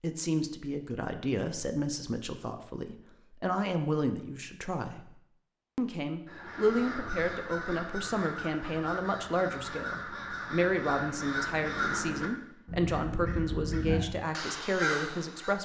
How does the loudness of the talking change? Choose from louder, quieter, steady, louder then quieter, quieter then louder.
steady.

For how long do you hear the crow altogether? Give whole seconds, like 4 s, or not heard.
9 s.